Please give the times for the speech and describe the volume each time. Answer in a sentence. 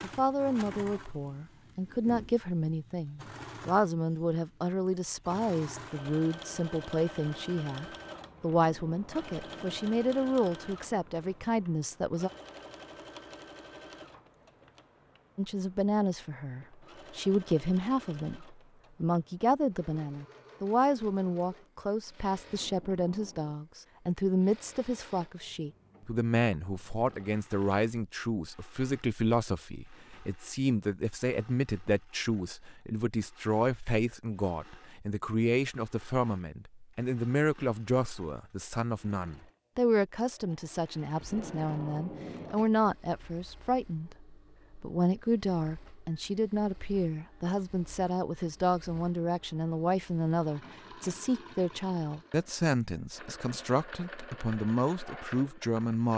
You can hear the speech from 0.0 to 12.3 s, at a steady volume; and from 15.3 to 56.1 s, at a steady volume.